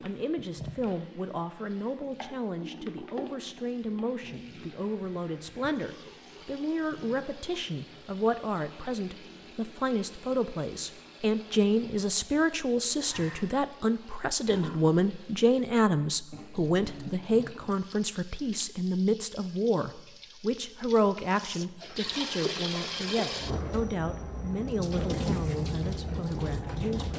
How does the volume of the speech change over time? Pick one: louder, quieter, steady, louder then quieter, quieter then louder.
louder then quieter.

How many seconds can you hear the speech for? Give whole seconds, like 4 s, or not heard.
27 s.